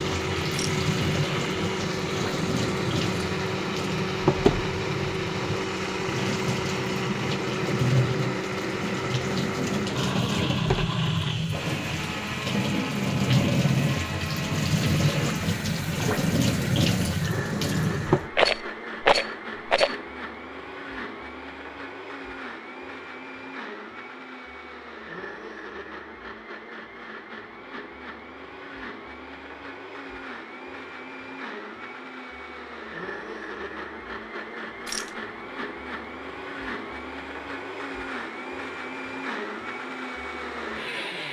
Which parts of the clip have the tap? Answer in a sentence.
The tap can be heard from 0.0 to 18.3 s.